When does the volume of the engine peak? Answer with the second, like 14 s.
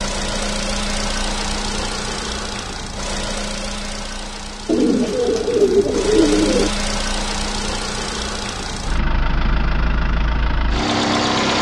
11 s.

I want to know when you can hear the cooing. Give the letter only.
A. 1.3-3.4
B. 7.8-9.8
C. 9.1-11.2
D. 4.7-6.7
D.